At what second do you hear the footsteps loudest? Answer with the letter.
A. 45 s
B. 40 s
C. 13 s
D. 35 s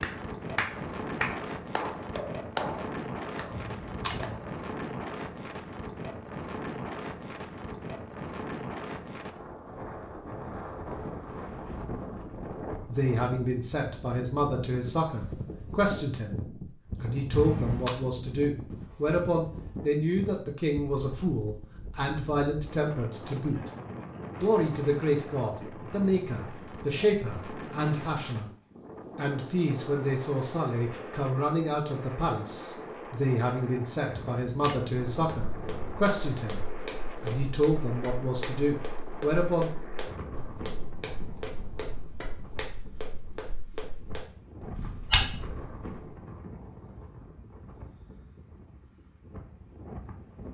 A.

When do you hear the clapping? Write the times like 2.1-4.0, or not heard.
0.0-4.5.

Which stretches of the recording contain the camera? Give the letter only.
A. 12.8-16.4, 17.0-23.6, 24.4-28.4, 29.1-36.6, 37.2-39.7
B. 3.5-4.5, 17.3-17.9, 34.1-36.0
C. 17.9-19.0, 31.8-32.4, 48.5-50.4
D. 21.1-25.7
B.